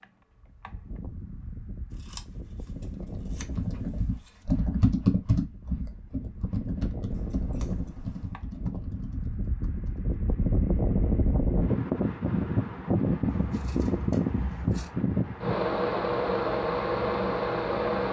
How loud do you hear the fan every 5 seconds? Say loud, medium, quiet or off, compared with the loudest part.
quiet, quiet, loud, loud.